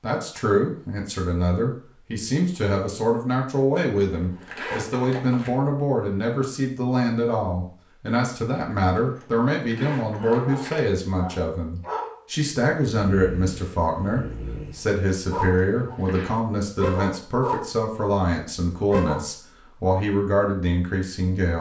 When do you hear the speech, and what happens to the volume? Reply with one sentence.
The speech can be heard from 0.0 to 21.5 s, at a steady volume.